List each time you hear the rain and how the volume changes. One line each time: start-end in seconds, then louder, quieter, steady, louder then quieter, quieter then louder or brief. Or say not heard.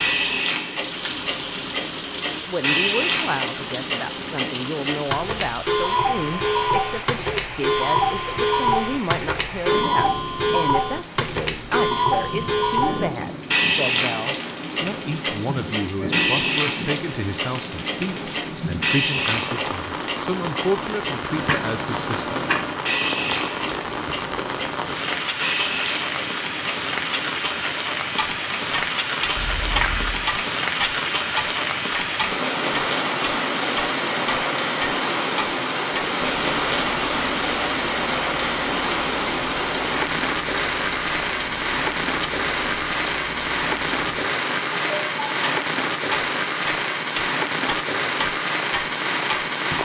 0.0-49.7 louder.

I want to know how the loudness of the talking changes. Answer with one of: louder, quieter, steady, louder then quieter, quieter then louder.
steady.